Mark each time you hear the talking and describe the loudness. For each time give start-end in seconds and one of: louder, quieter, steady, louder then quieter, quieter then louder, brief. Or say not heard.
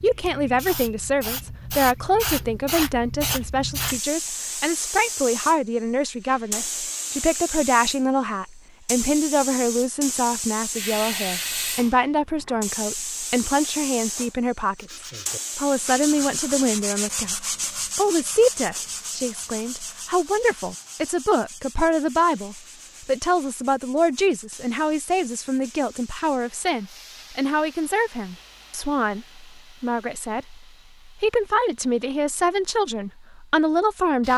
0.0-34.3 steady.